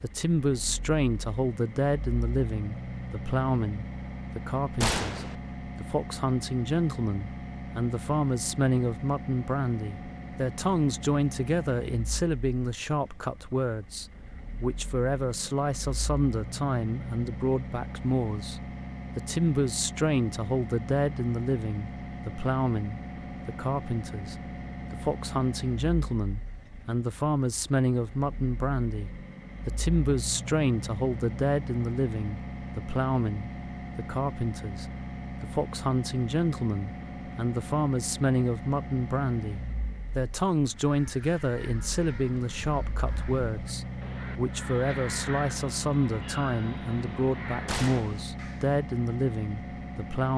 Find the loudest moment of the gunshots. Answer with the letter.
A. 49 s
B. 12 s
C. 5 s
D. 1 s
C.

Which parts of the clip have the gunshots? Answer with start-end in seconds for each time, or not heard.
4.8-5.3, 47.6-48.2.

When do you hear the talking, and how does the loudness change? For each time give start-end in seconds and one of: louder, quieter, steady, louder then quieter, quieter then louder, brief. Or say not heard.
0.0-50.3 steady.